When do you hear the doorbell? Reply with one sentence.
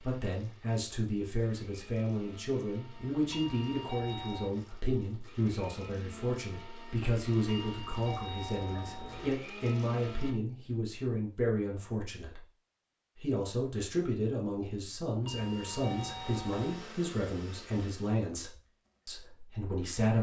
The doorbell can be heard from 3.2 to 4.5 s, from 7.5 to 9.3 s and from 15.2 to 16.9 s.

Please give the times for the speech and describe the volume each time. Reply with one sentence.
The speech can be heard from 0.0 to 12.4 s, at a steady volume; and from 13.2 to 20.1 s, getting quieter.